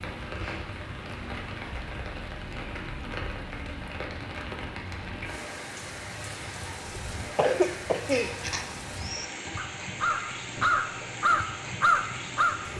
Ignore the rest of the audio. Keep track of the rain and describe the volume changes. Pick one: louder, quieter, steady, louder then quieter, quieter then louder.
steady.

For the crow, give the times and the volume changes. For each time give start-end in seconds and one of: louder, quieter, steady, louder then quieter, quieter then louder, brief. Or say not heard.
6.8-12.6 louder.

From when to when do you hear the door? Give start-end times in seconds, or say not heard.
not heard.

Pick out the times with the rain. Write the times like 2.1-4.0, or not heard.
0.0-12.7.